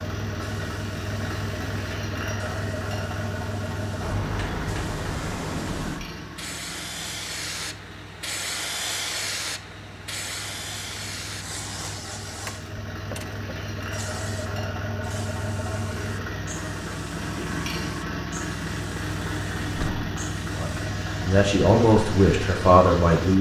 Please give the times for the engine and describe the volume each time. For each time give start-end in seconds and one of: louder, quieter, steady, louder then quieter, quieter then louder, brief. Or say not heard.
0.0-23.3 quieter then louder.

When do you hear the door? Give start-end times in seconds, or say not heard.
4.0-6.1, 12.4-13.4, 19.6-20.1.